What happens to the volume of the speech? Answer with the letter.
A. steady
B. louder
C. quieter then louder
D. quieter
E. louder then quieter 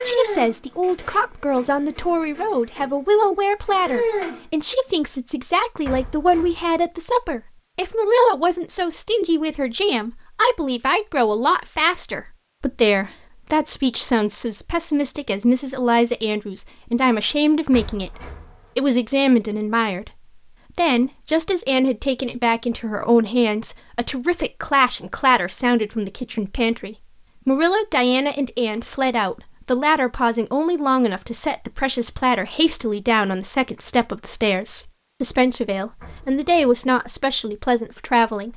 A.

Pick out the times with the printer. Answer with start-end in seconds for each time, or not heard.
0.0-4.5.